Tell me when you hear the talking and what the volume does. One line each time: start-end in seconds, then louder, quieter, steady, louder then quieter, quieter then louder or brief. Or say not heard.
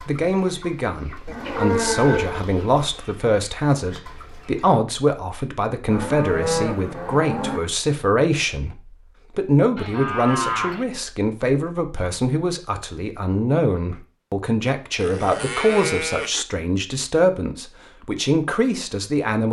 0.1-19.4 steady.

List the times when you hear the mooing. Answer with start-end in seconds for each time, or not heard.
1.2-2.5, 5.9-7.6, 9.8-10.8, 14.9-16.4.